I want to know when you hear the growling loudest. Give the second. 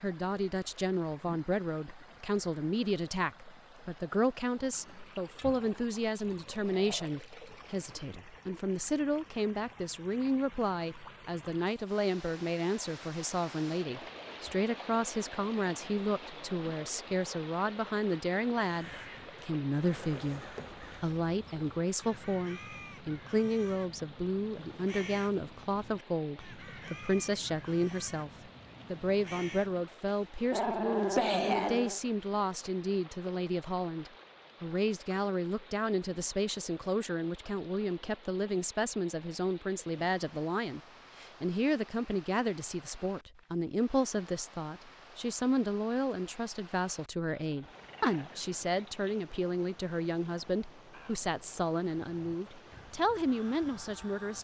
31 s.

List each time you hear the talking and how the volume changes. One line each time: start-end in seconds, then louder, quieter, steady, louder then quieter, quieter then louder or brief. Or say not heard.
0.0-54.3 steady.